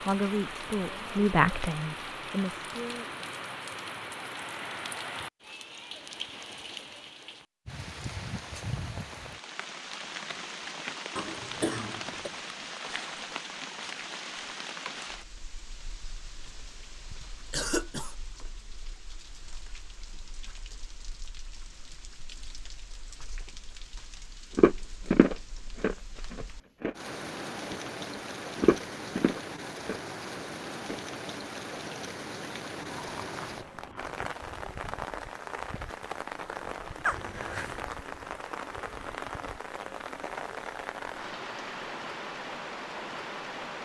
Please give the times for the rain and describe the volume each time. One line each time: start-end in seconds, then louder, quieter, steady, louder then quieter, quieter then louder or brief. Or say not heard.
0.0-43.7 quieter then louder.